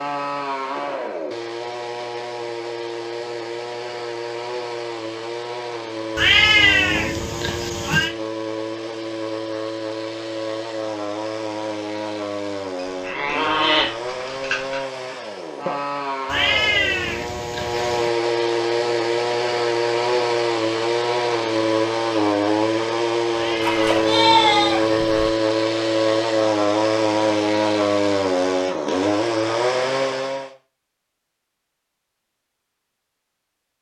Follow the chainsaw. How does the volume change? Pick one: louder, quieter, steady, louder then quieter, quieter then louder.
louder.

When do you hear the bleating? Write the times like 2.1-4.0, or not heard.
13.0-14.8, 23.6-25.3.